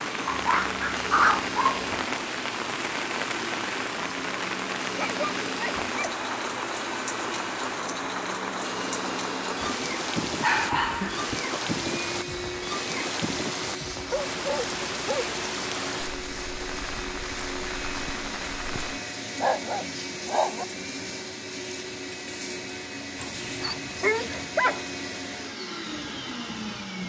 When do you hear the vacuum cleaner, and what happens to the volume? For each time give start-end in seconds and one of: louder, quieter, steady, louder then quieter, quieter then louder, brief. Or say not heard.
0.0-27.0 steady.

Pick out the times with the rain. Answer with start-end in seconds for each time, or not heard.
0.0-19.0.